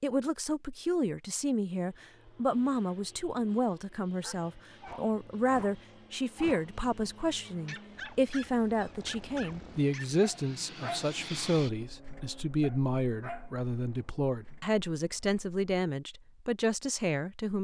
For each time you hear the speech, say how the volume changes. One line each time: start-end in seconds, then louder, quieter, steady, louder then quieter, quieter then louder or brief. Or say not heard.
0.0-17.5 steady.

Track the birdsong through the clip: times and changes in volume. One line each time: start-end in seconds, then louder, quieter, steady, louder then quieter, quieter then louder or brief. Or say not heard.
not heard.